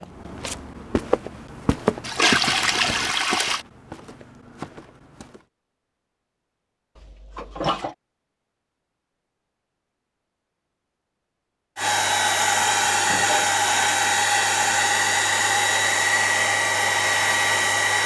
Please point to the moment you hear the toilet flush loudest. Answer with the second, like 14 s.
3 s.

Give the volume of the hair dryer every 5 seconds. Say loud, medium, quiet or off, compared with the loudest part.
off, off, loud, loud.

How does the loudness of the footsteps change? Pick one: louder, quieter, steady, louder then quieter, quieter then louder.
quieter.